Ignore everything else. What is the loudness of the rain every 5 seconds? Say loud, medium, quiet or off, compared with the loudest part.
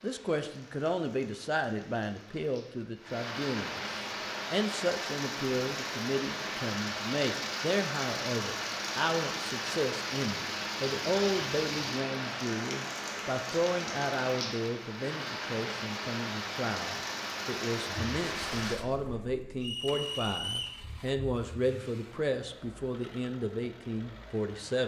medium, loud, loud, loud, off.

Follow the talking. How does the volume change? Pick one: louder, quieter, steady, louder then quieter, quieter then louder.
steady.